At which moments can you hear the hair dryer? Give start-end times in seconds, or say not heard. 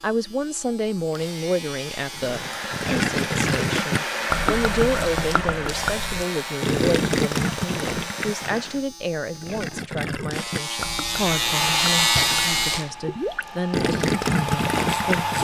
2.2-8.8, 11.3-15.3.